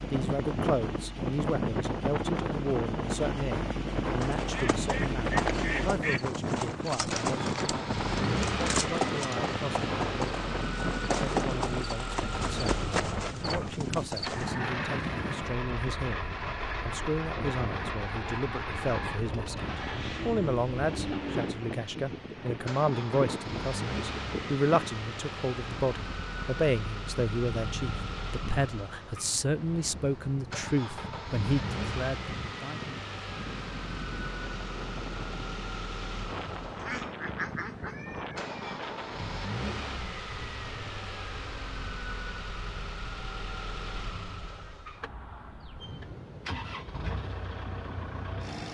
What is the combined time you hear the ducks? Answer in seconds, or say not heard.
4 s.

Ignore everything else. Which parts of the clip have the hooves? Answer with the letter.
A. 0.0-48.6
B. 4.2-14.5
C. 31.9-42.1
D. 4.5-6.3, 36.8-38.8
B.